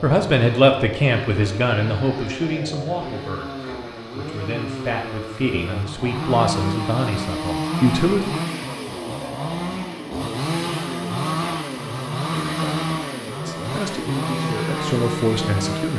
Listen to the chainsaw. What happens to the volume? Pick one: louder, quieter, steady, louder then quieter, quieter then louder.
louder.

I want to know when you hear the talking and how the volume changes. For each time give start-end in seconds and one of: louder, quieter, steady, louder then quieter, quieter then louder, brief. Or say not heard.
0.0-8.3 quieter then louder
13.4-15.9 brief.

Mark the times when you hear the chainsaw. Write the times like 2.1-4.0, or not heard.
0.0-15.9.